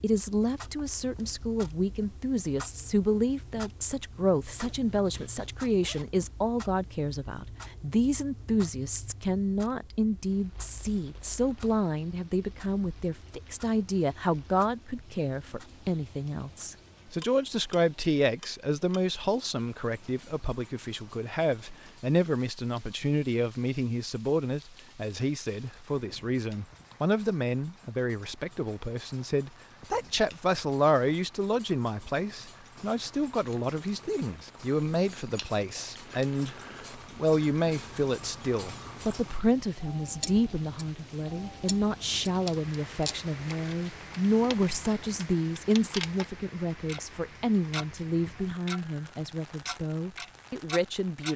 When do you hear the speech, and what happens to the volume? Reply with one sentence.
The speech can be heard from 0.0 to 51.3 s, at a steady volume.